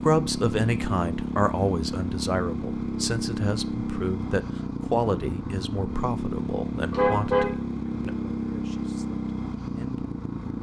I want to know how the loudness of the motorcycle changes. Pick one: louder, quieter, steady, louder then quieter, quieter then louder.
steady.